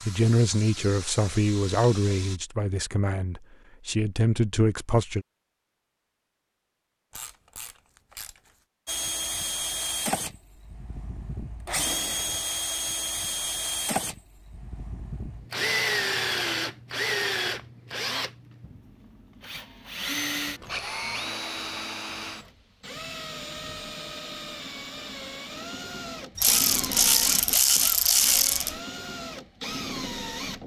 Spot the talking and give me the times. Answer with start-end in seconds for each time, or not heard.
0.0-5.2.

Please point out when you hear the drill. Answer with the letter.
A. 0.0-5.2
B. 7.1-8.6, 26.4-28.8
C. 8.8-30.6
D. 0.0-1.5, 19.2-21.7
C.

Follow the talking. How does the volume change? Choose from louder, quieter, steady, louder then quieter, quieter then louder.
quieter then louder.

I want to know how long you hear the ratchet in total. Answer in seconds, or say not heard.
4 s.